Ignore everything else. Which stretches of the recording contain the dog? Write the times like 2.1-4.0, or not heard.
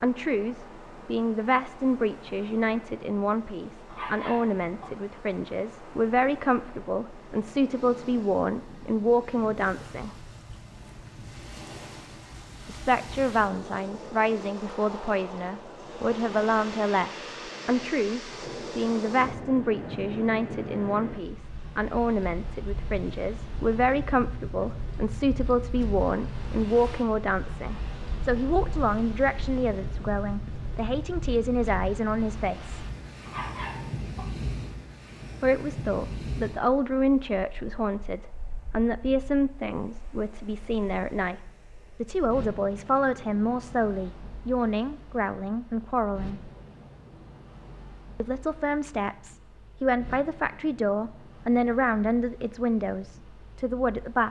3.9-4.9, 33.2-34.3.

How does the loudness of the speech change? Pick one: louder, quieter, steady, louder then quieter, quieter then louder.
steady.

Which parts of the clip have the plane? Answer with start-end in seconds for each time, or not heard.
not heard.